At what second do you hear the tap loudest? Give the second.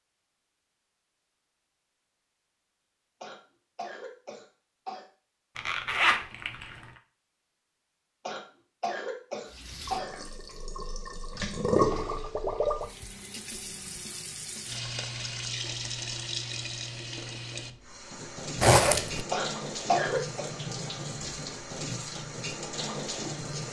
12 s.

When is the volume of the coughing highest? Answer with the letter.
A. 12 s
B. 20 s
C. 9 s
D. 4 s
B.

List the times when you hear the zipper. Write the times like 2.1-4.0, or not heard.
5.5-6.8, 18.6-19.2.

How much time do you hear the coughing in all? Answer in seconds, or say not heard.
5 s.